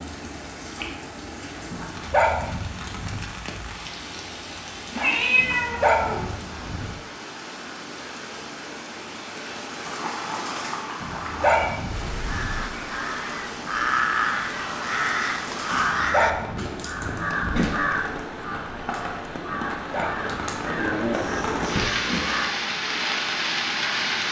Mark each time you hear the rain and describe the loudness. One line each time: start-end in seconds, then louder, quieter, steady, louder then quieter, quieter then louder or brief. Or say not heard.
0.0-24.2 louder.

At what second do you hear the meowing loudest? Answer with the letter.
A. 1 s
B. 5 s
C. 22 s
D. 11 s
B.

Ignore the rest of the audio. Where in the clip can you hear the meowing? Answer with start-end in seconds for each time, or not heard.
4.9-6.2, 9.8-11.7, 21.1-22.4.